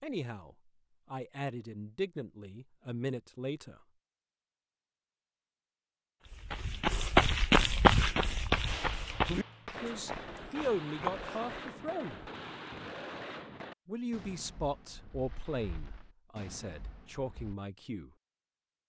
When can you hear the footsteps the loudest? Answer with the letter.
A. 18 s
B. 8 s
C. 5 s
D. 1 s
B.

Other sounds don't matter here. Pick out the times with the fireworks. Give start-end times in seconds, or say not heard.
8.7-17.6.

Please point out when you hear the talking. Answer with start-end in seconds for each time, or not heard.
0.0-3.8, 9.7-12.2, 13.8-18.1.